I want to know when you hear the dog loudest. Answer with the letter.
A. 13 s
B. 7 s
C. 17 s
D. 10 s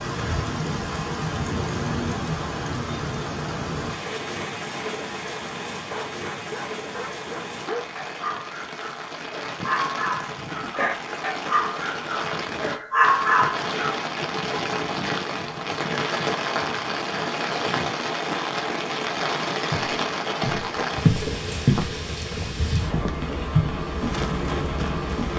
A.